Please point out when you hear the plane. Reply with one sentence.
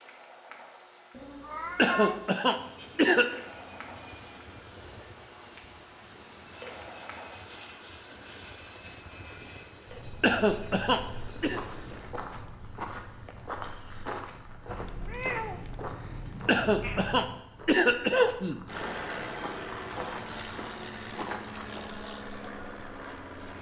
You can hear the plane from 2.5 to 12.2 s and from 18.6 to 23.5 s.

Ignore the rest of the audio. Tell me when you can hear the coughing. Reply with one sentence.
The coughing can be heard from 1.8 to 3.4 s, from 10.2 to 11.6 s and from 16.4 to 18.6 s.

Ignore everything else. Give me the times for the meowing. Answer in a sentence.
The meowing can be heard from 1.1 to 2.3 s and from 14.7 to 17.4 s.